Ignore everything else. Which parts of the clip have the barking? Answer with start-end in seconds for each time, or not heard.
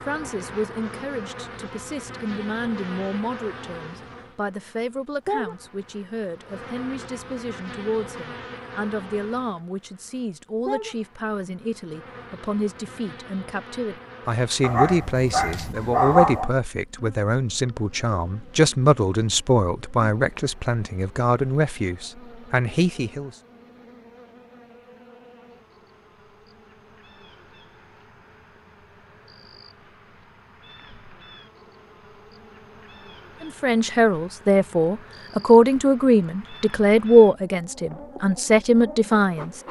14.6-16.5.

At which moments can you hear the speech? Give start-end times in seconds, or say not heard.
0.1-23.3, 33.4-39.5.